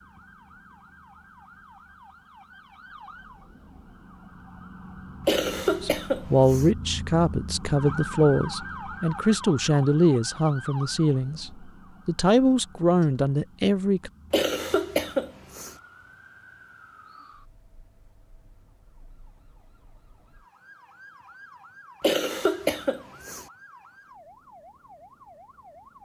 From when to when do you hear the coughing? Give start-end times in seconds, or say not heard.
5.2-6.7, 14.3-15.8, 22.0-23.4.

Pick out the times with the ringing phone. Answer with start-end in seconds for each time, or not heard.
not heard.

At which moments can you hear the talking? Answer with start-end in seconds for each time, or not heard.
5.8-14.1.